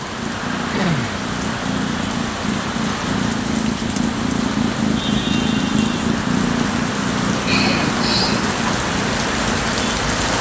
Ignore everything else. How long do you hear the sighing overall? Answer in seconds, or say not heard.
2 s.